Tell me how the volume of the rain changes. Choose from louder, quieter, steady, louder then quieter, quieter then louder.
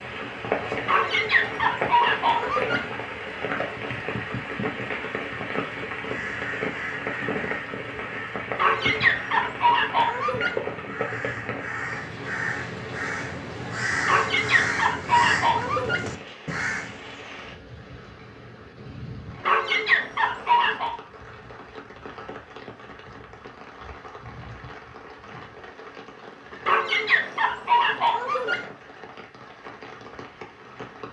quieter.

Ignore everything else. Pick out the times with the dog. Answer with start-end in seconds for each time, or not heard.
0.8-2.8, 8.6-10.5, 14.1-16.0, 19.4-20.9, 26.6-28.6.